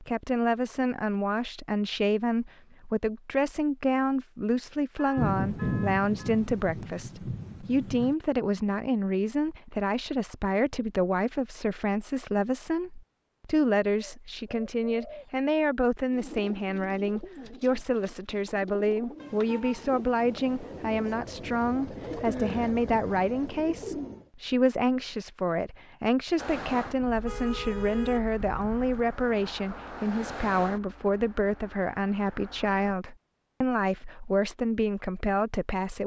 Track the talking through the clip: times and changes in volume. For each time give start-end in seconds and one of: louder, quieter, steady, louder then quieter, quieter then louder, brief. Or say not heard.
0.0-36.0 steady.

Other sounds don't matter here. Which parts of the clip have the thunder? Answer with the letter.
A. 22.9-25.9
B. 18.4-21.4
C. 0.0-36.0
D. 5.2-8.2
D.